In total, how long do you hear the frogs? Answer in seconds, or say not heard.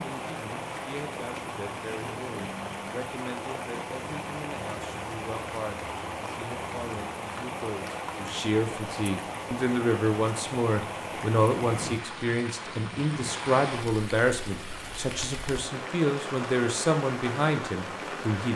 not heard.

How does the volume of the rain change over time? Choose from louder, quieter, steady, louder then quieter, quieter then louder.
steady.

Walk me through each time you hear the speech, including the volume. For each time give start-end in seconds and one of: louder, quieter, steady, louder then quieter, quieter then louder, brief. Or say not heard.
0.0-18.5 louder.